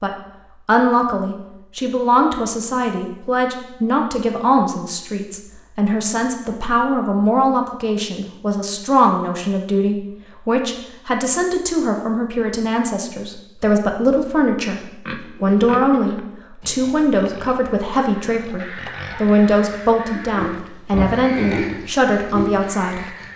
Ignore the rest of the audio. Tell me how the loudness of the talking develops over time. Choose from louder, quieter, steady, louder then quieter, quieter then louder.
steady.